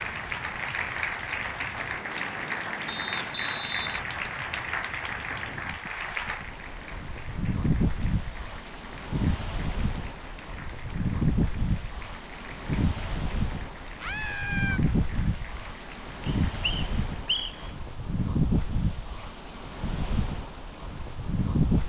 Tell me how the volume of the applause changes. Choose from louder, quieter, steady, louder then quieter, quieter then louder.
quieter.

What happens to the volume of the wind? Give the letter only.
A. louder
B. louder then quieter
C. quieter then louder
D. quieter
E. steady
A.